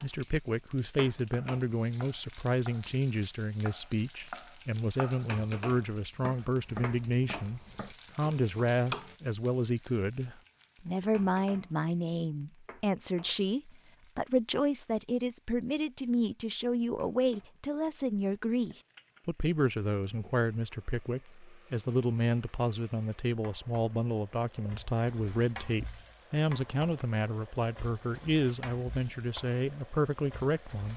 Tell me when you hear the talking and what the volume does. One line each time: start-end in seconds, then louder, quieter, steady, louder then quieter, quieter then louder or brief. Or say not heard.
0.0-30.9 steady.